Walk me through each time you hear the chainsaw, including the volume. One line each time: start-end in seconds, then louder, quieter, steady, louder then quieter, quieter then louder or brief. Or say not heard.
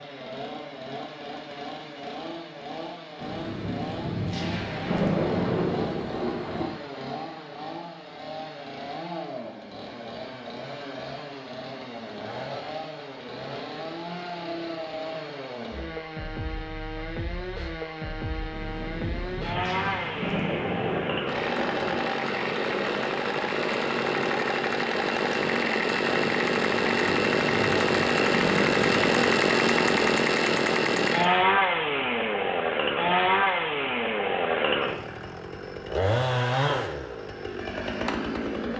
0.0-38.7 louder.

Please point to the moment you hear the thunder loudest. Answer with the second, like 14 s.
5 s.